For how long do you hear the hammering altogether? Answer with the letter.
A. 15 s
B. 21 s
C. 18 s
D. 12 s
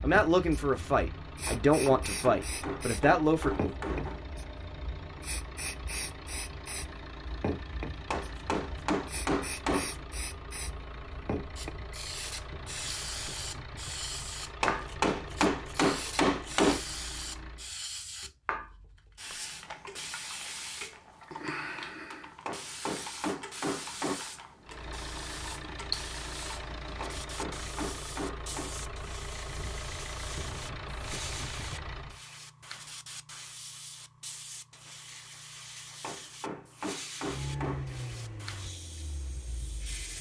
D.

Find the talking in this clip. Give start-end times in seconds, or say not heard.
0.0-3.5.